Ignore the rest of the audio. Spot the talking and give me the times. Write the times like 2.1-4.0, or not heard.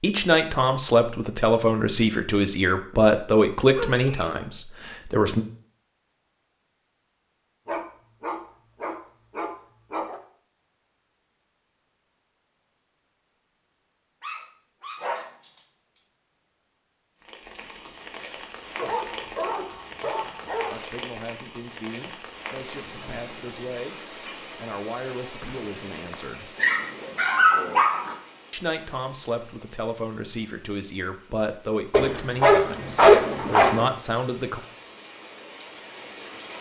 0.0-5.5, 20.7-26.5, 28.5-34.6.